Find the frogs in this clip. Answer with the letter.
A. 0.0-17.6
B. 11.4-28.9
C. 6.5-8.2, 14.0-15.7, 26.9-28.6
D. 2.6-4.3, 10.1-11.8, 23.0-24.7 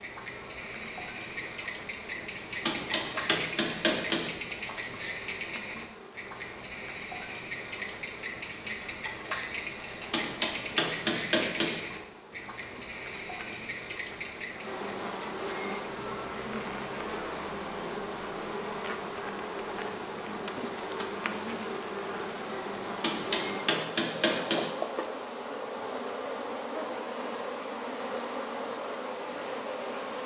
A.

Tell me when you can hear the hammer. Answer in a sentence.
You can hear the hammer from 2.6 to 4.3 s, from 10.1 to 11.8 s and from 23.0 to 24.7 s.